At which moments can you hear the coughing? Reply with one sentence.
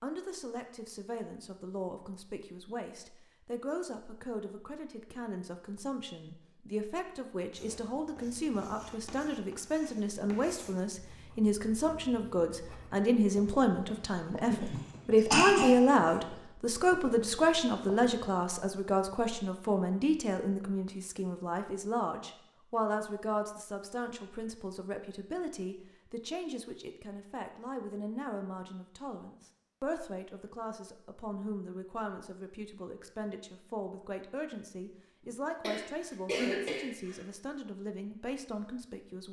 The coughing can be heard from 14.5 to 16.1 s and from 35.6 to 37.2 s.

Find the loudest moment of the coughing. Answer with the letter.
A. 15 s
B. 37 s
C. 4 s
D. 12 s
A.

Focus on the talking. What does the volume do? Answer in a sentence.
The volume of the talking goes up, then down.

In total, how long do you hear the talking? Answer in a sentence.
The talking can be heard for 39 seconds in total.